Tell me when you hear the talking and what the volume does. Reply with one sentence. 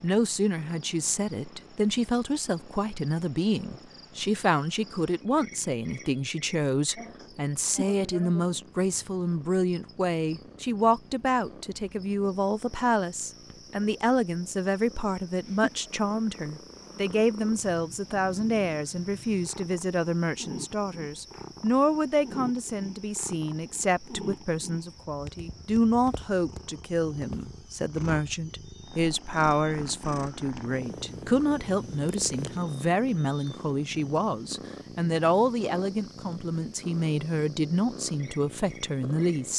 You can hear the talking from 0.0 to 39.5 s, at a steady volume.